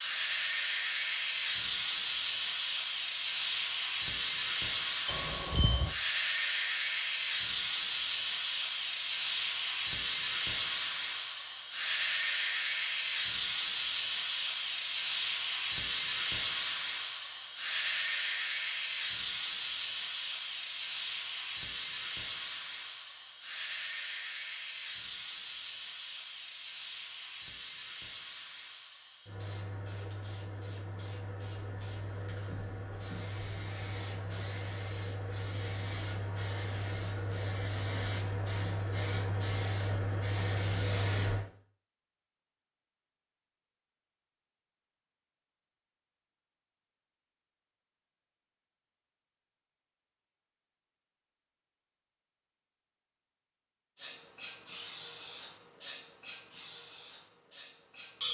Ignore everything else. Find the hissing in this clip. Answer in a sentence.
You can hear the hissing from 0.0 to 41.5 s and from 54.0 to 58.2 s.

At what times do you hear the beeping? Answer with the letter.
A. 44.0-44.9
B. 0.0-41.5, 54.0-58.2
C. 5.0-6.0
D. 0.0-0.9
C.